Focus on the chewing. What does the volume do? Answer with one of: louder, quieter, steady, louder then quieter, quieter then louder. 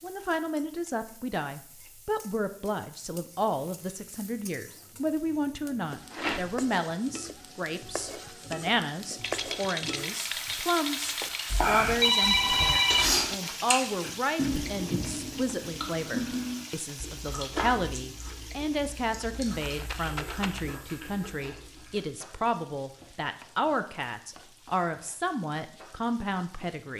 quieter.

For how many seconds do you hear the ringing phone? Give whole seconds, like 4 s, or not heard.
2 s.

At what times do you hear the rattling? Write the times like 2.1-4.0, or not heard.
6.1-6.7, 9.2-11.6, 19.0-20.6.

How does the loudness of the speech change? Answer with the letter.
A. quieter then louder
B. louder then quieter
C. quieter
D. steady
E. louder
D.